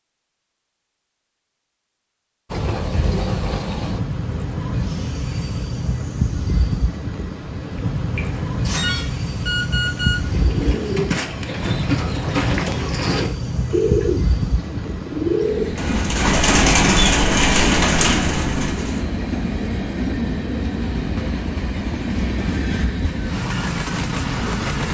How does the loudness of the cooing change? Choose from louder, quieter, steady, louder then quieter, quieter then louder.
louder.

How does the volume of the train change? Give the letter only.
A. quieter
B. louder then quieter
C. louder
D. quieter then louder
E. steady
E.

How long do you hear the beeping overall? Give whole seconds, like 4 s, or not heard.
2 s.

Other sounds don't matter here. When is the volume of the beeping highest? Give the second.
10 s.